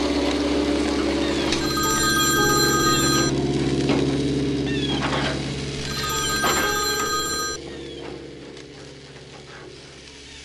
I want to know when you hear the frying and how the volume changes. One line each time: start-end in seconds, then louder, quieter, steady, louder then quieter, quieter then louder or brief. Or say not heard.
0.0-10.4 quieter.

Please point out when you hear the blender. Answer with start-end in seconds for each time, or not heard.
0.0-1.9.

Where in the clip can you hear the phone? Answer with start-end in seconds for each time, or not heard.
1.5-3.3, 5.8-7.6.